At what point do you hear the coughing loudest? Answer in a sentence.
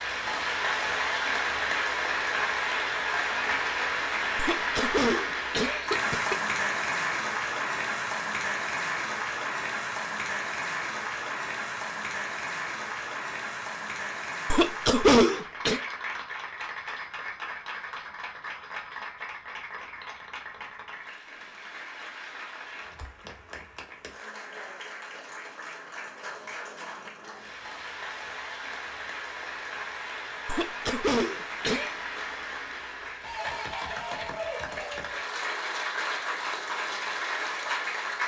The loudest moment of the coughing is at 15 seconds.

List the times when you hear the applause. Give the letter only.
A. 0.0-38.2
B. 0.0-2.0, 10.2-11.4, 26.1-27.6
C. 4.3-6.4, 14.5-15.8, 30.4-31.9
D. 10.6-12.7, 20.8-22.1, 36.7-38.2
A.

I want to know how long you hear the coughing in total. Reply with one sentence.
The coughing can be heard for 5 seconds in total.